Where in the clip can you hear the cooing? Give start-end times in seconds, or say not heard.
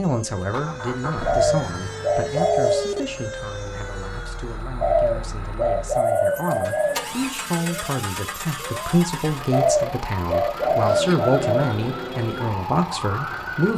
1.2-3.0, 4.8-7.3, 9.5-11.8.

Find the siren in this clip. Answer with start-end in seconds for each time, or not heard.
0.0-4.6, 6.0-13.7.